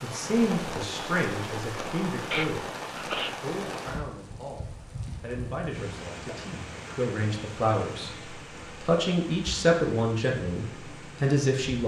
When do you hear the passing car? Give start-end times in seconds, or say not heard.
not heard.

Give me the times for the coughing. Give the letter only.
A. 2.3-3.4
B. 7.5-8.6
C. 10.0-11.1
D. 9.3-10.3
A.